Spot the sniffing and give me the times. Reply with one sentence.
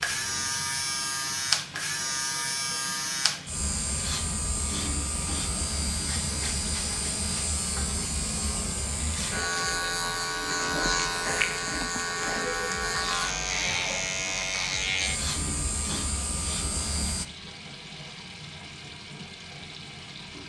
You can hear the sniffing from 10.7 to 12.5 s.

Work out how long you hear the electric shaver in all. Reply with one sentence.
The electric shaver can be heard for 17 seconds in total.